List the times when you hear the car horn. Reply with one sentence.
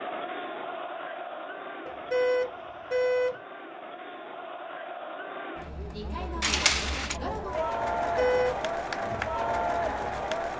The car horn can be heard from 1.9 to 3.4 s and from 8.0 to 8.6 s.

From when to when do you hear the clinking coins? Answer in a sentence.
The clinking coins can be heard from 6.4 to 7.2 s.